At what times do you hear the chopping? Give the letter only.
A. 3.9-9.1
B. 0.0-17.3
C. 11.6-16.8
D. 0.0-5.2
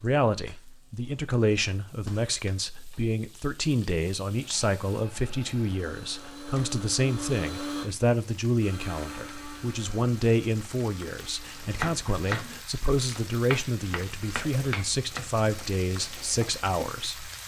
C.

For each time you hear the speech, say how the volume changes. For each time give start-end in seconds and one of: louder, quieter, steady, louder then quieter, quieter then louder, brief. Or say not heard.
0.0-17.3 steady.